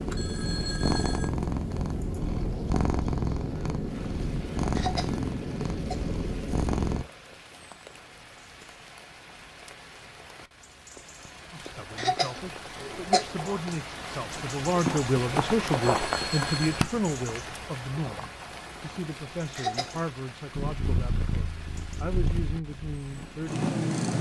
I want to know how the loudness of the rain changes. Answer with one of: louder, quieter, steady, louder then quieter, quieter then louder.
louder then quieter.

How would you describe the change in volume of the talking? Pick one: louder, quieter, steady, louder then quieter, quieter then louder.
louder then quieter.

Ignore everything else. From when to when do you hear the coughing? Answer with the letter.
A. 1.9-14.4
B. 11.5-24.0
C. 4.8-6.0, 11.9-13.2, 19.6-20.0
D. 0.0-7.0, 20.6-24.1
C.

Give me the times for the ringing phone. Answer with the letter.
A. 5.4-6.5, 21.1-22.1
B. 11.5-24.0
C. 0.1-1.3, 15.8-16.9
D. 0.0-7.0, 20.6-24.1
C.